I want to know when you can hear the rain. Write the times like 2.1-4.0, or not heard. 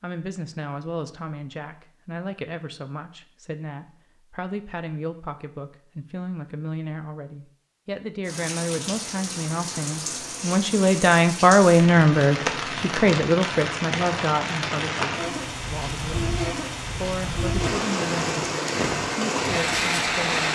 8.2-20.5.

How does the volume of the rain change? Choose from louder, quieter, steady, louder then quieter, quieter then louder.
louder.